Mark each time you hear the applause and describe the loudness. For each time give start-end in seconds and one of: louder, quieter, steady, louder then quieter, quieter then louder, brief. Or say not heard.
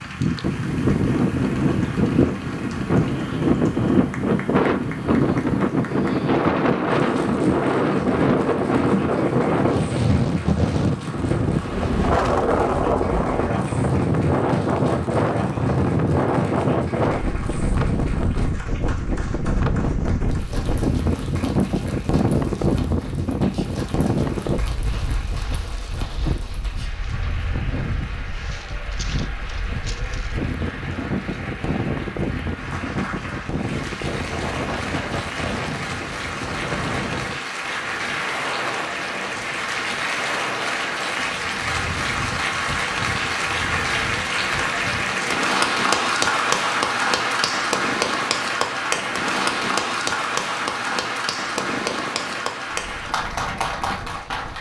0.0-54.5 louder.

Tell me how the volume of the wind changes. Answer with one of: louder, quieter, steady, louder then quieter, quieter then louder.
quieter.